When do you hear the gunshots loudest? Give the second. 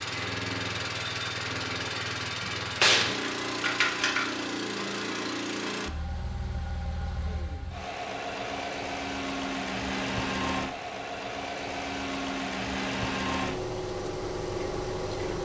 3 s.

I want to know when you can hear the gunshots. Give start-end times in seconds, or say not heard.
2.4-4.2.